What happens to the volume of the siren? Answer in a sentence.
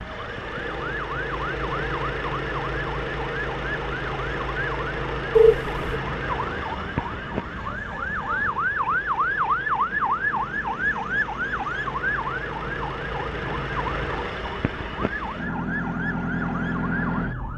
The volume of the siren goes up, then down.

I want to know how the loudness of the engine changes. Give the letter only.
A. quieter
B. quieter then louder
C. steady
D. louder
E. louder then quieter
B.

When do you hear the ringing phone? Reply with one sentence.
The ringing phone can be heard from 5.3 to 6.0 s.